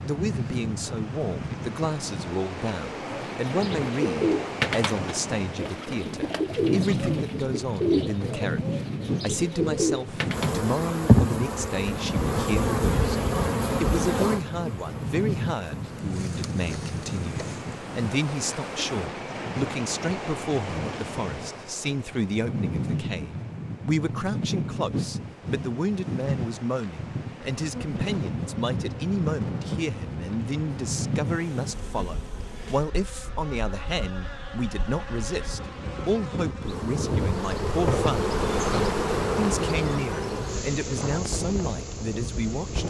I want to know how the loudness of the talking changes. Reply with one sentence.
The volume of the talking stays about the same.